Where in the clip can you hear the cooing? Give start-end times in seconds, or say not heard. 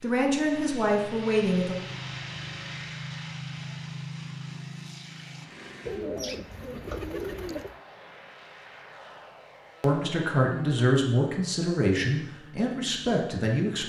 5.8-7.8.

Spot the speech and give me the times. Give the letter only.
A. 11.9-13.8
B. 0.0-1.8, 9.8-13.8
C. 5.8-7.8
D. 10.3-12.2
B.